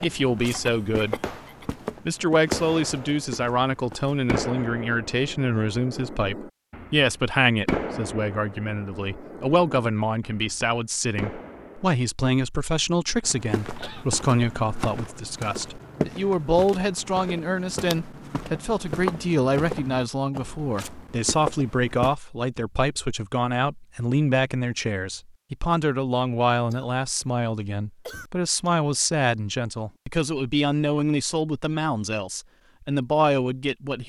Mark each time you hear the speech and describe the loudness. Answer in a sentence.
The speech can be heard briefly from 0.0 to 1.2 s; and from 2.0 to 34.0 s, at a steady volume.